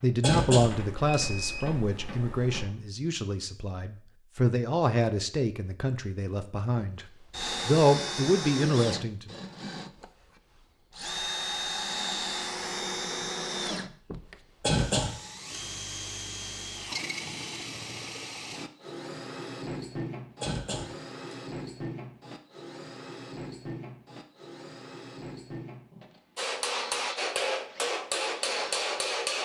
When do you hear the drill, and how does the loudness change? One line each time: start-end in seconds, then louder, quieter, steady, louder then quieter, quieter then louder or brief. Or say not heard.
6.8-29.3 quieter.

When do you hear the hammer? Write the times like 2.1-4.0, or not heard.
0.0-2.8, 26.4-29.3.